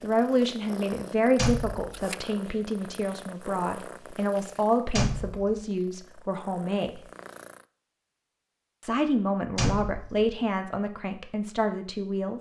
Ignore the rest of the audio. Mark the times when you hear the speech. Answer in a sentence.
The speech can be heard from 0.0 to 7.0 s and from 8.8 to 12.3 s.